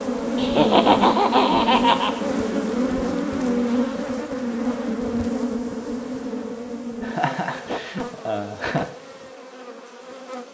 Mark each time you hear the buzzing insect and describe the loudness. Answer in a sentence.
You can hear the buzzing insect from 0.0 to 10.4 s, getting quieter.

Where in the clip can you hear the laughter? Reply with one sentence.
You can hear the laughter from 0.3 to 2.2 s and from 7.0 to 8.9 s.